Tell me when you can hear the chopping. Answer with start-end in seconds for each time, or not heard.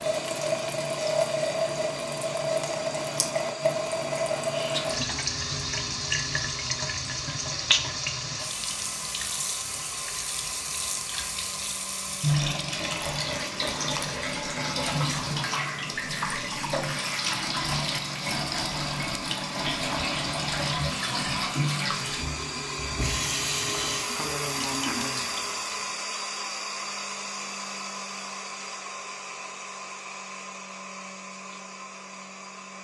not heard.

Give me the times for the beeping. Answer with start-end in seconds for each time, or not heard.
not heard.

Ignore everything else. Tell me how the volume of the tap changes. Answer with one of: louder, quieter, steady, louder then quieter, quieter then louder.
steady.